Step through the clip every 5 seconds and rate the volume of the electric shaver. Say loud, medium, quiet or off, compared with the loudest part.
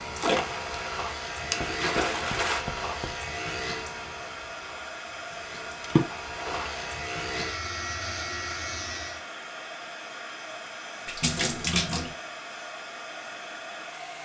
loud, loud, off.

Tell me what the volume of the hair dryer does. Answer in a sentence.
The loudness of the hair dryer stays about the same.